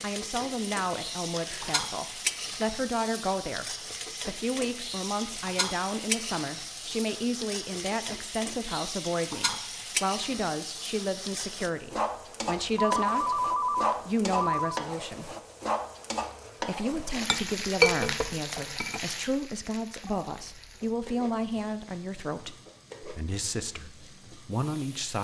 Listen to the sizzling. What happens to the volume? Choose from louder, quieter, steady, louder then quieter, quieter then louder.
quieter.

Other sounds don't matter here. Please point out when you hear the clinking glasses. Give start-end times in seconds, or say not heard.
17.1-19.0.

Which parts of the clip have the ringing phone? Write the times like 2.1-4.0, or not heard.
1.3-1.8, 12.8-14.8, 20.0-21.0.